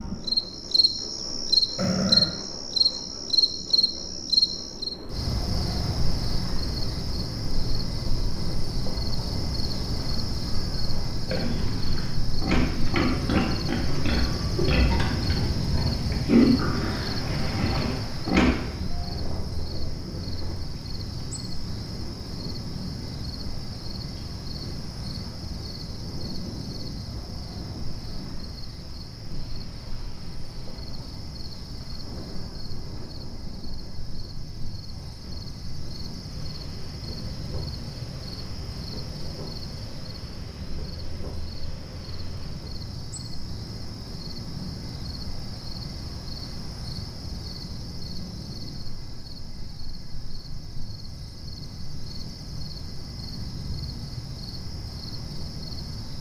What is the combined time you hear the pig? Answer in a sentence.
You can hear the pig for 7 seconds altogether.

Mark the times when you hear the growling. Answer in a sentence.
You can hear the growling from 1.8 to 2.5 s.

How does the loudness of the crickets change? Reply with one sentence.
The loudness of the crickets goes down.